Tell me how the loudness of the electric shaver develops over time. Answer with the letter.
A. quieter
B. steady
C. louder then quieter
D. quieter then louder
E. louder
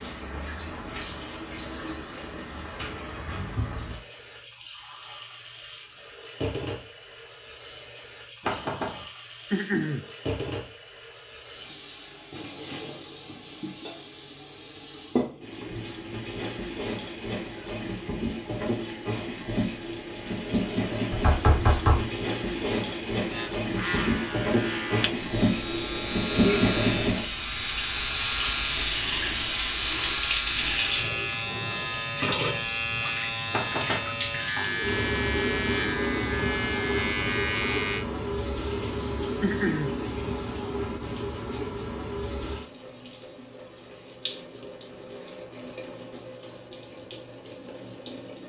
B.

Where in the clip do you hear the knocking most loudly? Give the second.
22 s.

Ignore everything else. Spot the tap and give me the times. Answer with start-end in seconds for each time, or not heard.
0.0-48.4.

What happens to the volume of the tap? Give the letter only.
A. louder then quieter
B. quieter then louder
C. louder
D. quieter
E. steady
A.